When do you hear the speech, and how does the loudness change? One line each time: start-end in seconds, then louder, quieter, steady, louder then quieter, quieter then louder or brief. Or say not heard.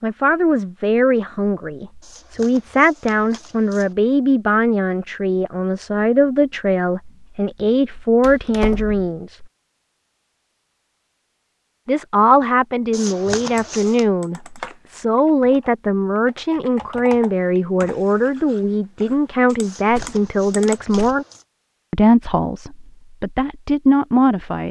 0.0-9.4 steady
11.8-21.2 steady
21.9-24.6 brief.